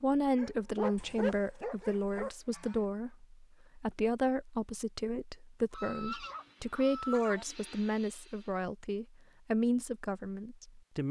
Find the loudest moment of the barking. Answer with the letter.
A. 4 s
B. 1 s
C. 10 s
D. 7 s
B.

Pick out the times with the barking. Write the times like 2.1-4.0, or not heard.
0.3-2.3, 6.0-6.5.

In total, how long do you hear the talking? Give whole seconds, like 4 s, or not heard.
11 s.